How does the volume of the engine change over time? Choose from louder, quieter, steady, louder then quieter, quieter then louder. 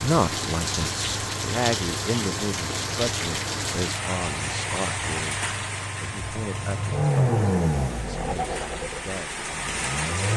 louder then quieter.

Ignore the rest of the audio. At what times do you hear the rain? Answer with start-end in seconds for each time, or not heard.
0.0-10.3.